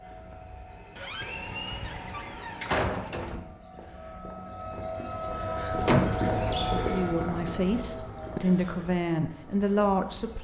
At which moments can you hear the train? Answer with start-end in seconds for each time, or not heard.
0.0-3.4.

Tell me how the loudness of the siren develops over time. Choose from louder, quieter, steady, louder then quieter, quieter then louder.
louder then quieter.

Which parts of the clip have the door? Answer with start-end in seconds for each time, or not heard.
0.9-3.4, 5.8-6.4.